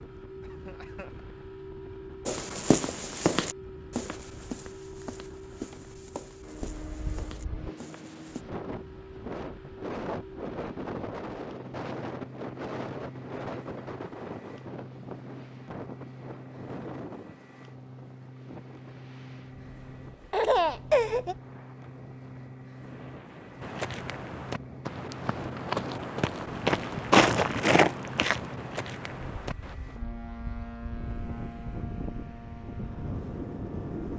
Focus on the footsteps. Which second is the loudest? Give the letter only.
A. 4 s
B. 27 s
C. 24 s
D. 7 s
B.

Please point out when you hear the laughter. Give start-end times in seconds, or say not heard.
0.4-1.1, 20.3-21.4.